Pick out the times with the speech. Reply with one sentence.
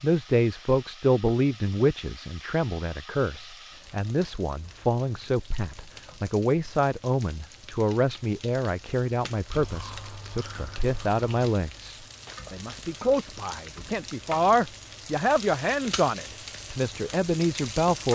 You can hear the speech from 0.0 to 18.1 s.